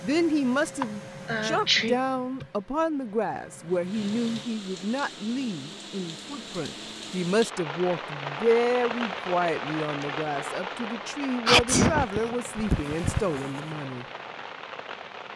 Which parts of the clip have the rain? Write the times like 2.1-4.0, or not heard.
3.6-15.3.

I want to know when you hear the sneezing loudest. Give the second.
12 s.